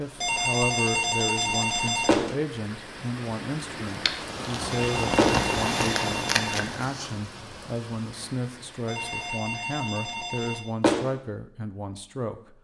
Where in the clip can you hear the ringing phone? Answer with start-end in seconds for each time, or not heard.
0.1-2.3, 4.7-6.7, 8.8-10.7.